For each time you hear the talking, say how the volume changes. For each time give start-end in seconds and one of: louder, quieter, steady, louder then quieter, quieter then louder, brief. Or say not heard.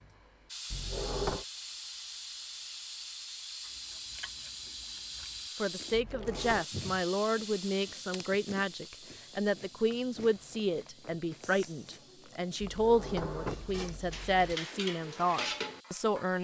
5.5-16.4 steady.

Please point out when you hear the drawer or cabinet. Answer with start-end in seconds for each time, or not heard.
0.7-1.4, 5.9-6.7, 12.6-14.6.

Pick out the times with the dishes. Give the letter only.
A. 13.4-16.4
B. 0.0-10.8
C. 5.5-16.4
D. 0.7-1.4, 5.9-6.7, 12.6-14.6
A.